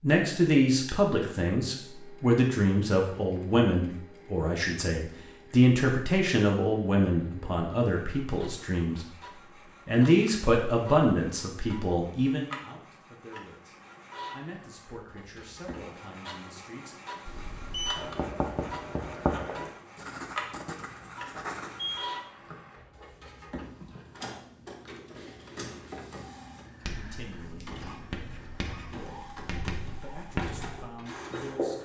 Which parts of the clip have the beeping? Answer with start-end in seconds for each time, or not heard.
0.8-1.2, 17.2-17.9, 21.8-22.6.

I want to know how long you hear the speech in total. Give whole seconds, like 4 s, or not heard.
20 s.